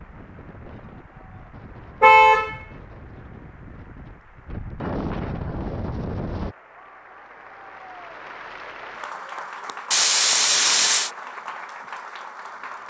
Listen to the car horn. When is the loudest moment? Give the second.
2 s.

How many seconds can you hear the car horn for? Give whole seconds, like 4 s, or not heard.
2 s.